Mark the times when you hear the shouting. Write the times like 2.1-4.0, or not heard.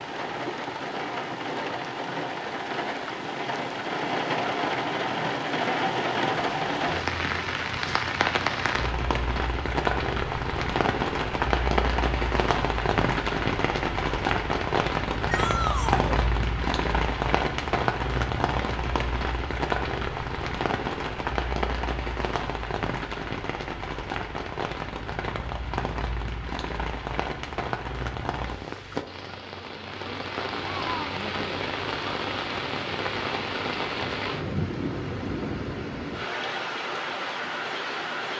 15.2-16.2.